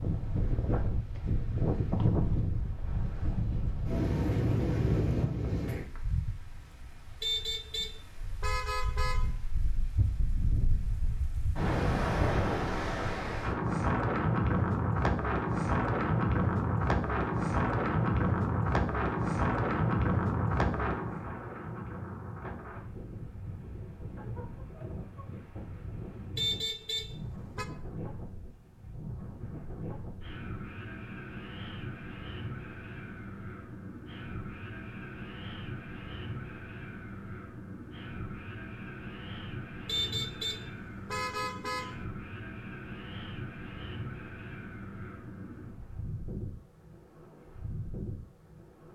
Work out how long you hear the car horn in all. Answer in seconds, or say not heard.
6 s.